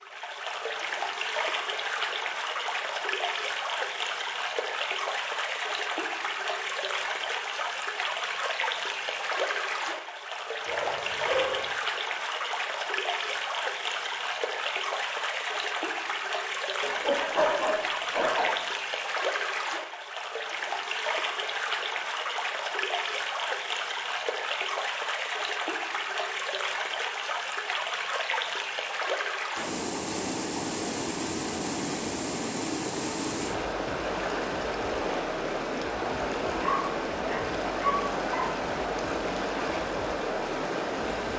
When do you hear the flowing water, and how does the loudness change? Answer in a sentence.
The flowing water can be heard from 0.0 to 41.3 s, at a steady volume.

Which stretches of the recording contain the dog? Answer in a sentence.
You can hear the dog from 10.7 to 11.8 s, from 16.8 to 18.6 s and from 36.6 to 38.5 s.